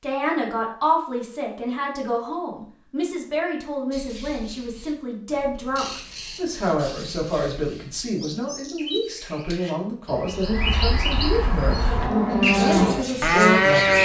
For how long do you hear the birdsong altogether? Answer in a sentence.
You can hear the birdsong for 10 seconds altogether.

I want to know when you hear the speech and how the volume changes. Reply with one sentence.
The speech can be heard from 0.0 to 13.9 s, at a steady volume.